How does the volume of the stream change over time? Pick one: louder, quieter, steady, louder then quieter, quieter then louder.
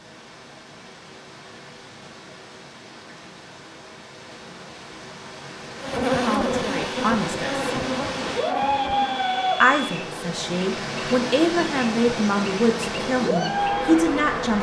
louder.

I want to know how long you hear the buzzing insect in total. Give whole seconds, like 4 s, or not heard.
9 s.